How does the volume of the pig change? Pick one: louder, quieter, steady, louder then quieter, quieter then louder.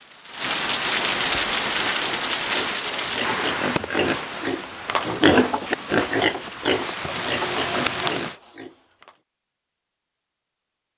louder then quieter.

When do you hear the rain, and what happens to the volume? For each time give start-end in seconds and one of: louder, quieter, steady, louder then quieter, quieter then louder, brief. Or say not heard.
0.0-8.3 quieter then louder.